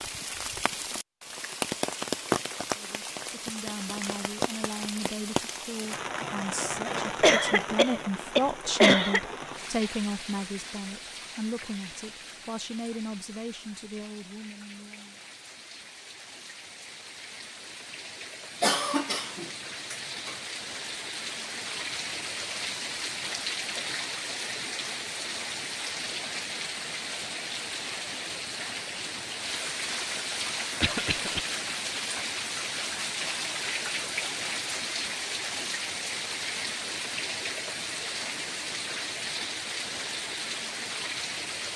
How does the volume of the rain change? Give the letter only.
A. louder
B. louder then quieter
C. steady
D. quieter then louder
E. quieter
D.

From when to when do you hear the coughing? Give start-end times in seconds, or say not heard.
7.2-9.2, 18.6-20.4, 30.8-31.4.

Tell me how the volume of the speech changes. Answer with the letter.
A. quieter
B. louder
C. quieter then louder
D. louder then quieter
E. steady
D.